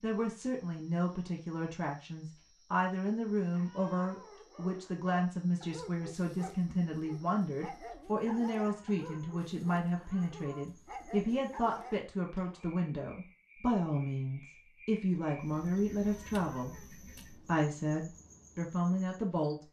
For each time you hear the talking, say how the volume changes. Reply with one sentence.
The talking can be heard from 0.0 to 19.6 s, at a steady volume.